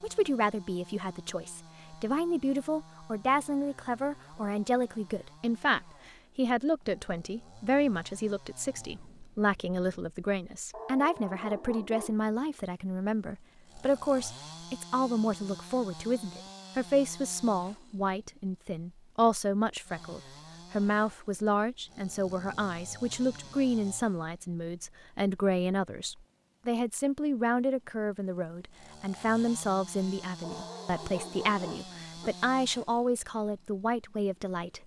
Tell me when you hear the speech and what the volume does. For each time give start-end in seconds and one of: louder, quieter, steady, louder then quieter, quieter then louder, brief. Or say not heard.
0.0-34.8 steady.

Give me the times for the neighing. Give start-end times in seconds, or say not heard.
not heard.